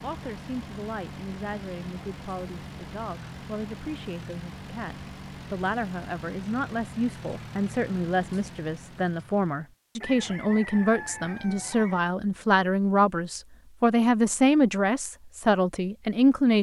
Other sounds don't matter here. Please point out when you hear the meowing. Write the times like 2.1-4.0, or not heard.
not heard.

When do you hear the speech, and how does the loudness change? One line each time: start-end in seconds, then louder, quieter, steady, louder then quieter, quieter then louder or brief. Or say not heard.
0.0-16.5 louder.